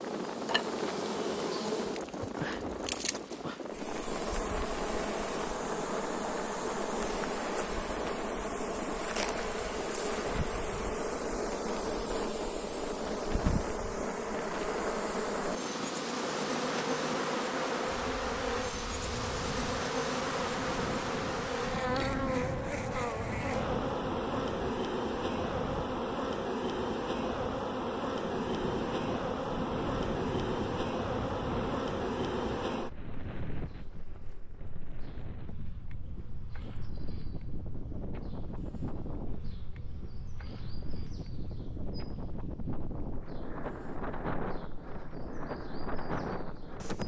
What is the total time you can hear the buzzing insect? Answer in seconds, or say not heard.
47 s.